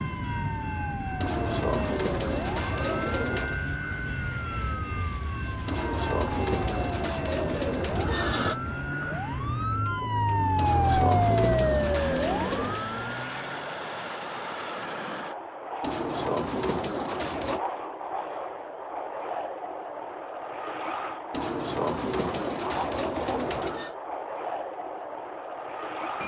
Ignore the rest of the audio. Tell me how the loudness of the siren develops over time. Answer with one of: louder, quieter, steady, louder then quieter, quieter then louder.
louder.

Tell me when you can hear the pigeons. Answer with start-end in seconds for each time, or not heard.
1.2-3.6, 5.7-8.6, 10.6-12.8, 15.8-17.6, 21.3-23.9.